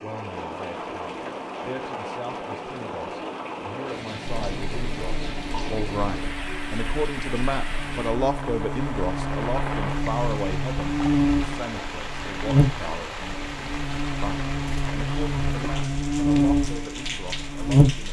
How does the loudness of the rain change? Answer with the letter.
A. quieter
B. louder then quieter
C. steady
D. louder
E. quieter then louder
C.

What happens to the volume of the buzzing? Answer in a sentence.
The loudness of the buzzing goes up.